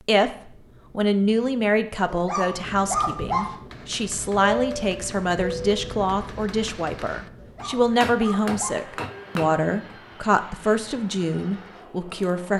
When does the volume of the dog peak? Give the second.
3 s.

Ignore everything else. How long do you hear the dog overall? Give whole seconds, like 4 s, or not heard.
3 s.